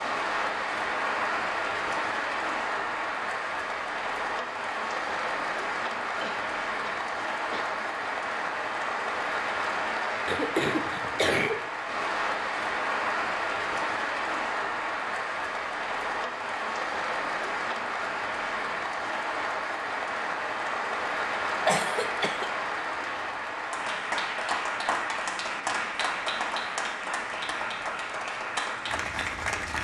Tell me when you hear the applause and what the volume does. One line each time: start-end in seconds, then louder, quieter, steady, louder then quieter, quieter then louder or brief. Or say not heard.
0.0-29.8 steady.